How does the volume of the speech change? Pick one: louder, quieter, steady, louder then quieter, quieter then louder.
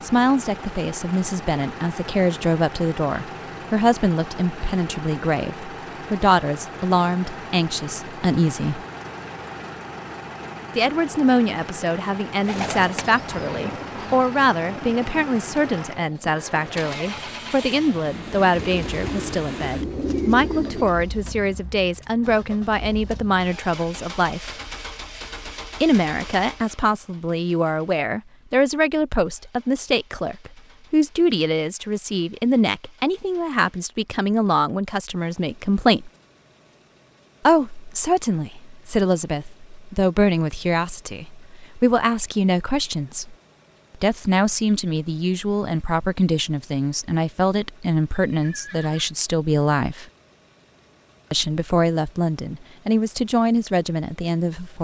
steady.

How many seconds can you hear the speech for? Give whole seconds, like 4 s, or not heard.
48 s.